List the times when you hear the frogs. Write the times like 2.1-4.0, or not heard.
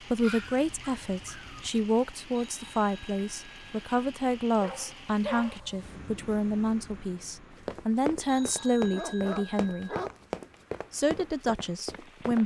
not heard.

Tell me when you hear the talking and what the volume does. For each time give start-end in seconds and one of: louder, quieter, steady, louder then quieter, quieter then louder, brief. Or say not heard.
0.1-9.9 steady
10.9-12.4 brief.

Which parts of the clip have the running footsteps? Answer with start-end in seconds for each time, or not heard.
7.5-12.4.